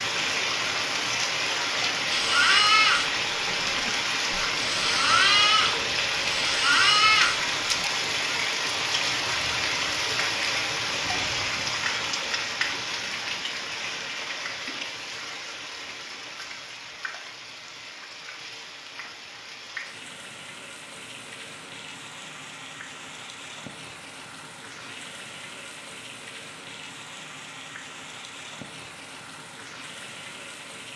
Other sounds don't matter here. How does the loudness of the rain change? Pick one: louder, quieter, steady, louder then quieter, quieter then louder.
quieter.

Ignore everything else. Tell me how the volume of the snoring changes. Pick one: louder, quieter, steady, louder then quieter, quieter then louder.
quieter then louder.